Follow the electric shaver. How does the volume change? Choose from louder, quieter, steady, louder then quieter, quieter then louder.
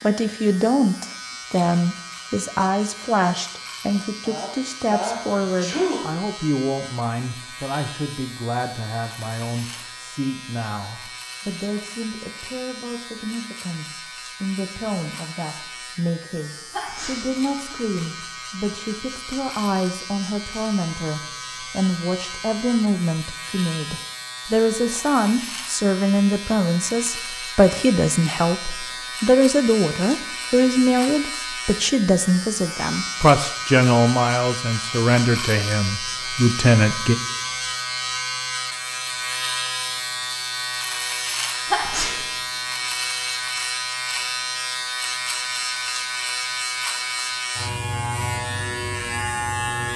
louder.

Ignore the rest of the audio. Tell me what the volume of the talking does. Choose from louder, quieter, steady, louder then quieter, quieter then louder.
quieter then louder.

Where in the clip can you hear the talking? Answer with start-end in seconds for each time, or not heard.
0.0-37.1.